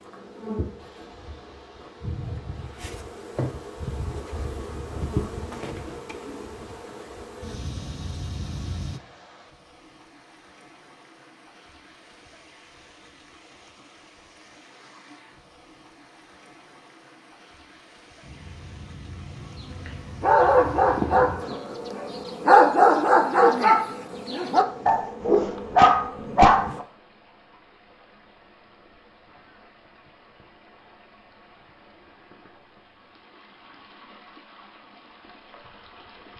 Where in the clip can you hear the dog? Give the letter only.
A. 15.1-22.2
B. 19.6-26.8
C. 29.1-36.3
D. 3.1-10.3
B.